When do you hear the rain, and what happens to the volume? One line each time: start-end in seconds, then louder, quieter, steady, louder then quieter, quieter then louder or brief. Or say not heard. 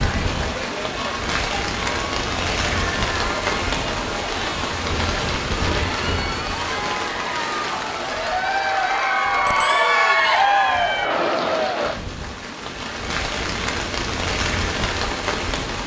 0.0-15.8 quieter then louder.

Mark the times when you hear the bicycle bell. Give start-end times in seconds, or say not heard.
9.4-9.9.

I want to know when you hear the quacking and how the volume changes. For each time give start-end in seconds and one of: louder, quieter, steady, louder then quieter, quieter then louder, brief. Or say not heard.
not heard.